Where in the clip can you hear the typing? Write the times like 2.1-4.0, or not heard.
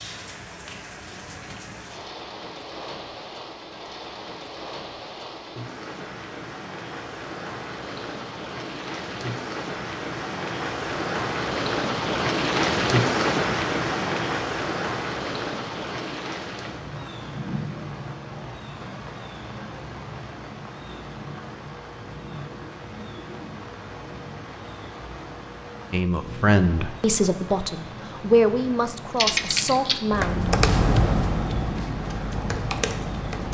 29.1-33.4.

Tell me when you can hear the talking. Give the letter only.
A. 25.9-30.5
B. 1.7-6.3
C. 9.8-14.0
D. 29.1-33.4
A.